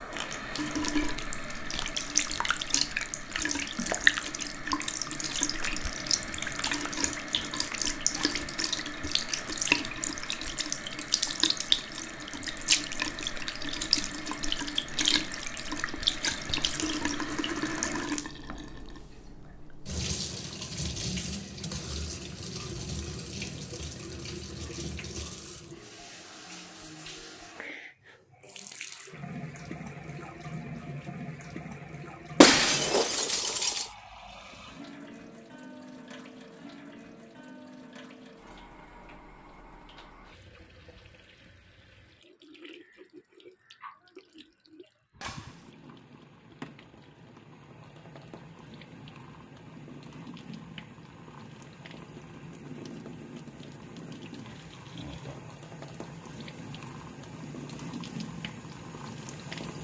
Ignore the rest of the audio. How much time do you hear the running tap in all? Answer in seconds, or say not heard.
60 s.